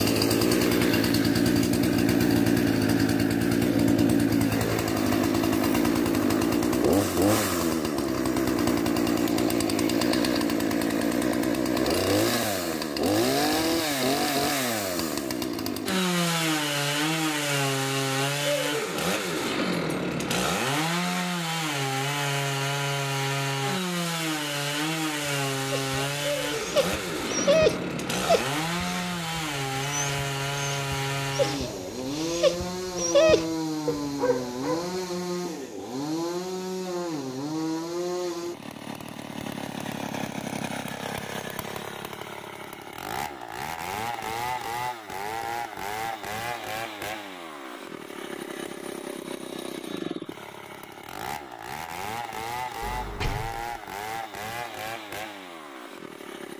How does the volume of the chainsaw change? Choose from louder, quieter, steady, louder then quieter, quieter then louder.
quieter.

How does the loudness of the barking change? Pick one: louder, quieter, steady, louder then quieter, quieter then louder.
quieter then louder.